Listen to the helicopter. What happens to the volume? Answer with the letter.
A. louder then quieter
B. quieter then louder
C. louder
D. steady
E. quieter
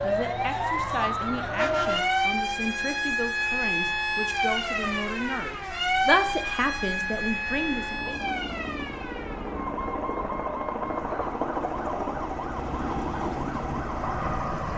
C.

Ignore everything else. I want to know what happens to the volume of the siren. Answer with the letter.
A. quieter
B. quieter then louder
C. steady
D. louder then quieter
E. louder
A.